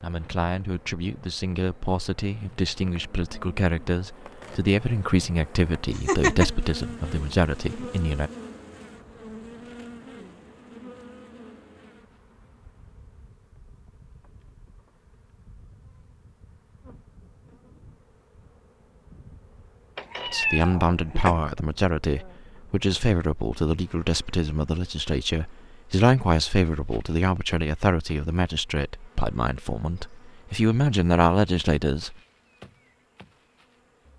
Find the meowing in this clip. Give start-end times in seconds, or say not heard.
5.9-6.5, 19.9-21.4.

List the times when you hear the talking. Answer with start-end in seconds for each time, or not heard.
0.0-8.3, 20.2-32.1.